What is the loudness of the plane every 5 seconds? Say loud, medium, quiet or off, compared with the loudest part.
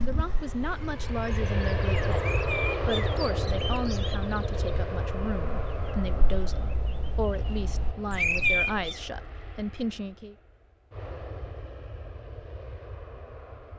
loud, medium, quiet.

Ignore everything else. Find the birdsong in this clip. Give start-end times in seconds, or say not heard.
0.0-8.9.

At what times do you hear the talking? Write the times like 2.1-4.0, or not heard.
0.0-10.3.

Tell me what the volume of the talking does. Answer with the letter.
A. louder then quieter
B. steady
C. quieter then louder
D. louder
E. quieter
B.